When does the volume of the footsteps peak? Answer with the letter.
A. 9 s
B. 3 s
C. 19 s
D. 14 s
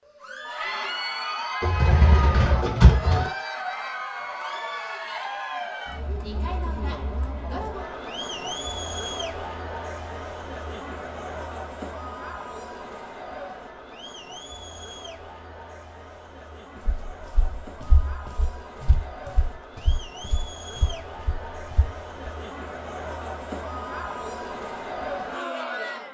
C.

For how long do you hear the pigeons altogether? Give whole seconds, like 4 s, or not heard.
2 s.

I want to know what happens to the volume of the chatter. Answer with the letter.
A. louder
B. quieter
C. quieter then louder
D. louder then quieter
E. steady
C.